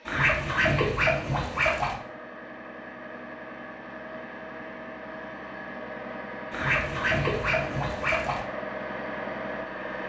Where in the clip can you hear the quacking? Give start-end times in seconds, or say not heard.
0.1-1.9, 6.5-8.4.